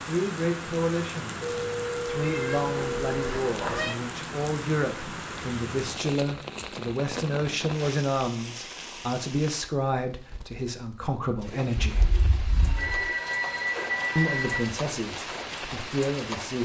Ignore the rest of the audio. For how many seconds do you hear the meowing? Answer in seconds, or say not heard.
3 s.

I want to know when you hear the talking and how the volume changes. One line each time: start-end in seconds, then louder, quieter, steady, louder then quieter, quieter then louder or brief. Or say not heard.
0.1-12.1 steady
14.2-16.6 brief.